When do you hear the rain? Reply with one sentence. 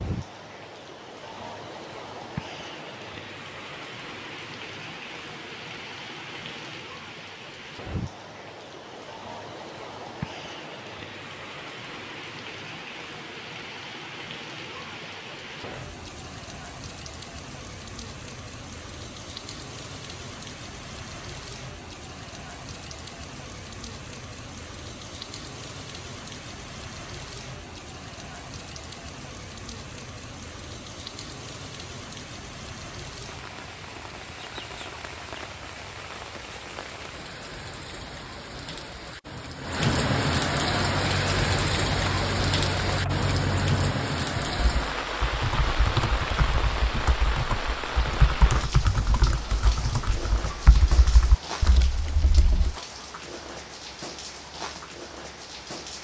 The rain can be heard from 0.0 to 55.9 s.